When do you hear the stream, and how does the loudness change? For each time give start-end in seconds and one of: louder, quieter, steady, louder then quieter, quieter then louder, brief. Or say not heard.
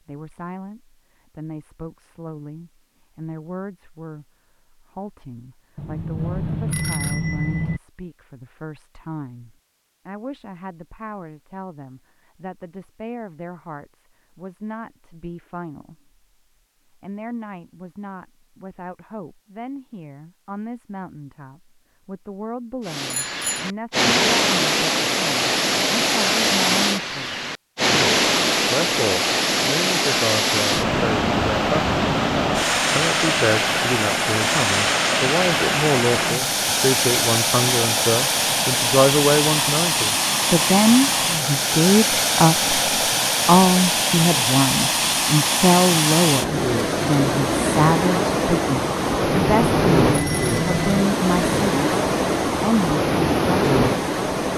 22.9-54.5 steady.